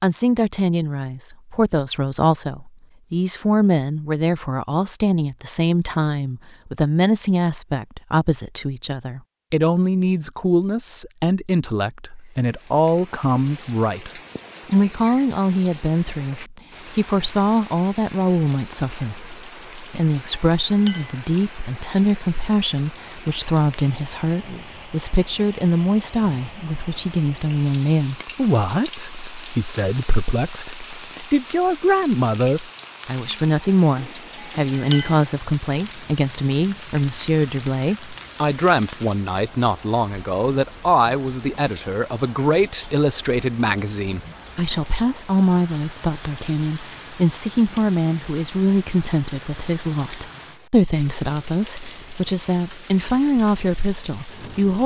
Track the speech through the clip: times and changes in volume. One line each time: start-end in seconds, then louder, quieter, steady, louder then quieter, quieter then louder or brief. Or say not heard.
0.0-54.8 steady.